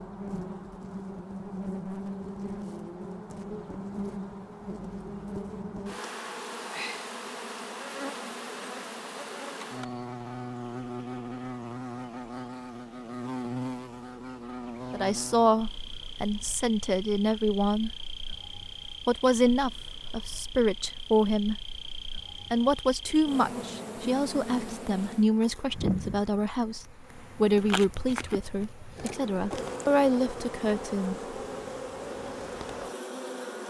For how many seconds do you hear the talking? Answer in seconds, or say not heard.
14 s.